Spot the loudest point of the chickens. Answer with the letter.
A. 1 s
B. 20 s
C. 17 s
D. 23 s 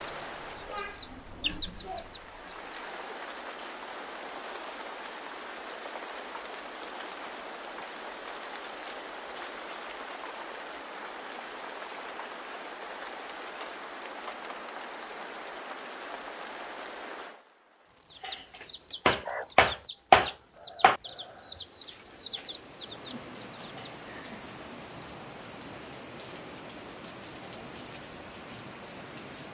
B.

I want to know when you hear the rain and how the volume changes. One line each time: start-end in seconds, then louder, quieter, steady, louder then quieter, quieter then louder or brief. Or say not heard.
0.0-29.4 quieter then louder.